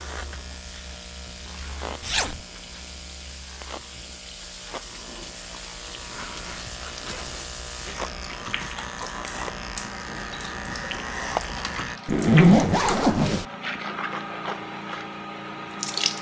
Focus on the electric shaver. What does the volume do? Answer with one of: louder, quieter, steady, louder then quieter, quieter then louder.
louder.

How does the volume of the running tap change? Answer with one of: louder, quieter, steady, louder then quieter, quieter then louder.
louder.